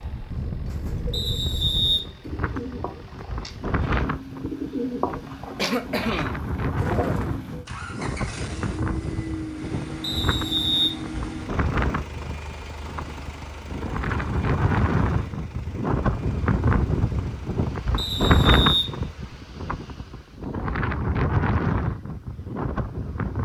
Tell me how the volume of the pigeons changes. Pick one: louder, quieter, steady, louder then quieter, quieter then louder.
louder.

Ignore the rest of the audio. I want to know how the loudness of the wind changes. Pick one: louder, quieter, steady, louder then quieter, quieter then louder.
louder.